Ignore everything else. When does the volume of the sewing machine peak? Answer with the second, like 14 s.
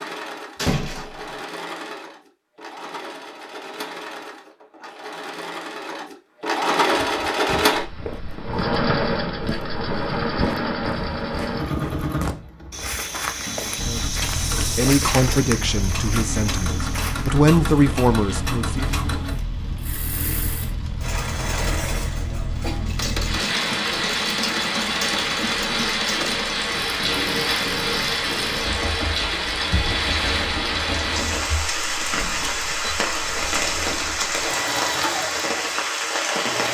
7 s.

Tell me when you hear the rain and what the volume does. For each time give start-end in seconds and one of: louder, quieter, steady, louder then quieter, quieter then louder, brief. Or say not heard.
13.8-36.6 louder.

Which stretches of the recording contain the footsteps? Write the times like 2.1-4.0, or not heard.
6.9-17.4.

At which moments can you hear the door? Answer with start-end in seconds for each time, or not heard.
0.6-1.4.